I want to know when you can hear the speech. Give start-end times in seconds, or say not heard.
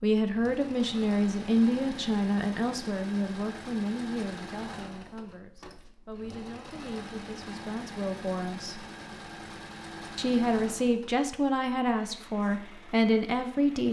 0.0-8.8, 10.2-13.8.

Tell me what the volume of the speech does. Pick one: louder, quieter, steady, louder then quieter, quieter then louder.
quieter then louder.